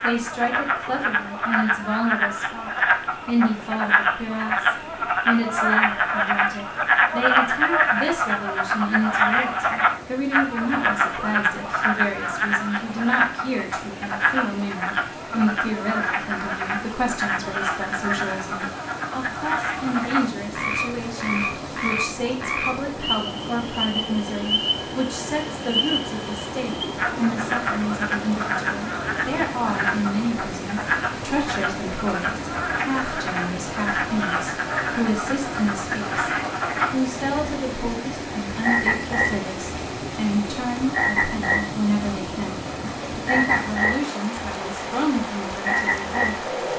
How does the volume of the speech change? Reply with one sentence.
The loudness of the speech stays about the same.